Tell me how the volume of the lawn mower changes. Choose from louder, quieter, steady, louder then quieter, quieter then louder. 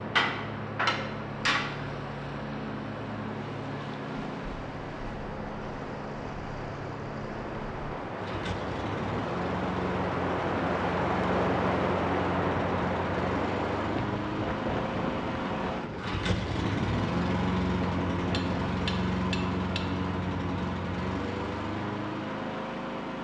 louder.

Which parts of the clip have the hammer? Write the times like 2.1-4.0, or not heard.
0.1-1.7, 18.3-19.8.